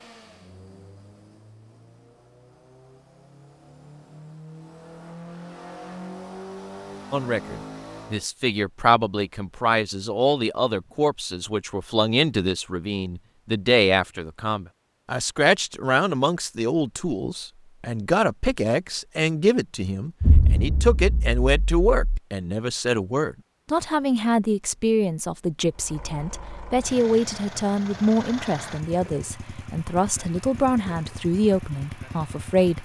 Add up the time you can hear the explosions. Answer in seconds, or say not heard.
2 s.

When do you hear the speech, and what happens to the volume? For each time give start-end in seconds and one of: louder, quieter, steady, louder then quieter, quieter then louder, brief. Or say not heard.
7.1-32.7 steady.